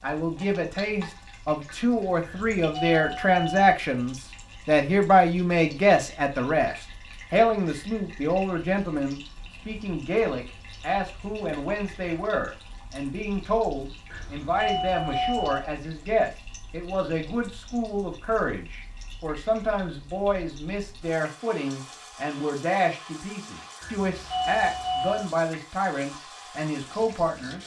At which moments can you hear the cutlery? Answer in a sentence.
The cutlery can't be heard in this clip.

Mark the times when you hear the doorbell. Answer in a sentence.
The doorbell can be heard from 2.2 to 3.8 s, from 14.1 to 15.6 s and from 23.8 to 25.3 s.